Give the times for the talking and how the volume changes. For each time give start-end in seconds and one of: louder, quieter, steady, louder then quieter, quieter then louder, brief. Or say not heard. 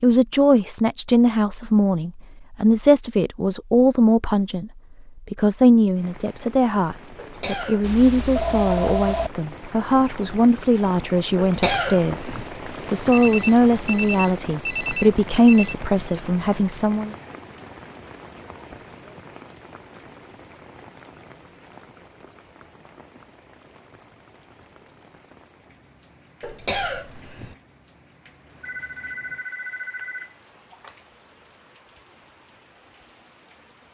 0.0-17.1 steady.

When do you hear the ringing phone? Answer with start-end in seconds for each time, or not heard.
7.8-9.3, 13.1-15.8, 28.6-30.9.